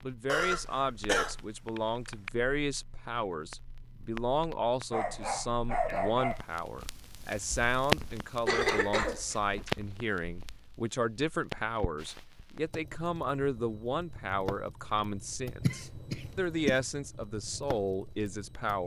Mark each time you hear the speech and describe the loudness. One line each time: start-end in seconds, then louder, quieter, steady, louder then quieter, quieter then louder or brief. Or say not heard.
0.0-18.8 steady.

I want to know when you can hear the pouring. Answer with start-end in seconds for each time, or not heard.
not heard.